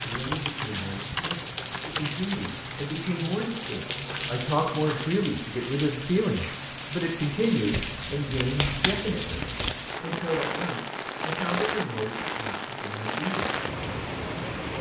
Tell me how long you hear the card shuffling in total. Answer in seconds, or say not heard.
4 s.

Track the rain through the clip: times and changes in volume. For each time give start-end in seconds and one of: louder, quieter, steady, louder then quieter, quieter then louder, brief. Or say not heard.
0.0-14.7 steady.